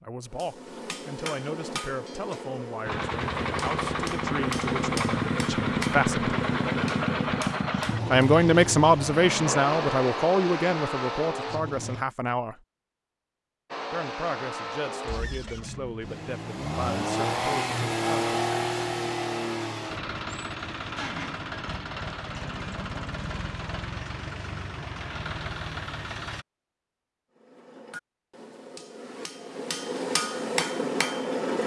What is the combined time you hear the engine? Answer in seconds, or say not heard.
22 s.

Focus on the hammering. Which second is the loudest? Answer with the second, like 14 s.
31 s.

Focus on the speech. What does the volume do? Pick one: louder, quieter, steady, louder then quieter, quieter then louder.
louder then quieter.